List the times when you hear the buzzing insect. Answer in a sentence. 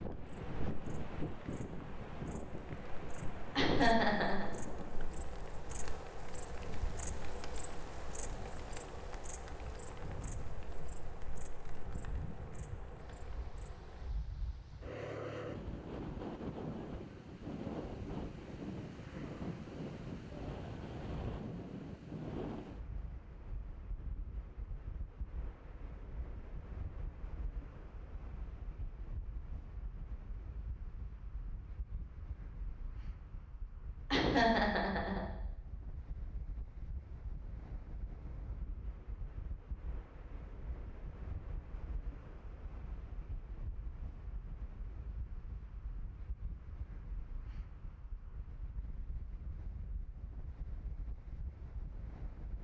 The buzzing insect can be heard from 0.0 to 13.7 s.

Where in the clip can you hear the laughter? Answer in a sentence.
You can hear the laughter from 3.5 to 4.5 s and from 34.1 to 35.2 s.